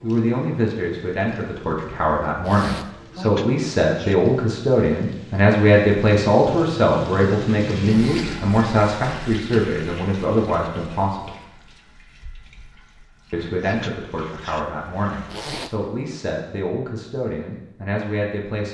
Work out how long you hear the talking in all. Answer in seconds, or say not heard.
17 s.